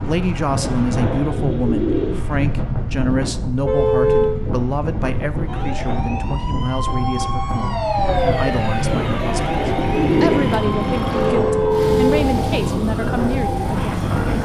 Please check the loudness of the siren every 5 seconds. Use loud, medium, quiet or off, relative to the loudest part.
off, loud, medium.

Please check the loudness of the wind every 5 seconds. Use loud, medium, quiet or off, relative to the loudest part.
loud, medium, loud.